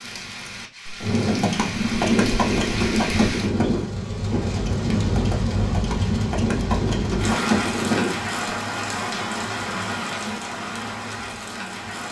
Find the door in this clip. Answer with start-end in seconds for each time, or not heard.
not heard.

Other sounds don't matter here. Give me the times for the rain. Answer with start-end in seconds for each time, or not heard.
0.0-12.0.